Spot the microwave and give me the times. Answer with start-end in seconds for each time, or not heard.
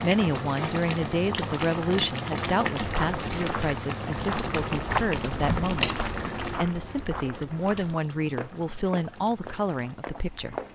not heard.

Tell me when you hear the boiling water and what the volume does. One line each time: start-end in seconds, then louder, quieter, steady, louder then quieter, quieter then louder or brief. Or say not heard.
0.0-10.7 quieter.